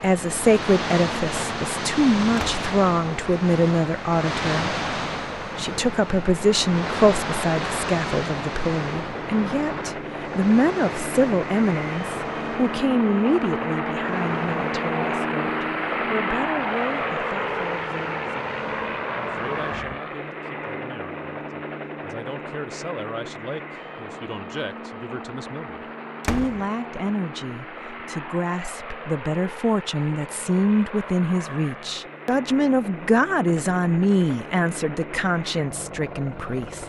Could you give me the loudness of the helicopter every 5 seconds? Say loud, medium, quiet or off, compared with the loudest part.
medium, medium, loud, loud, medium, medium, medium, medium.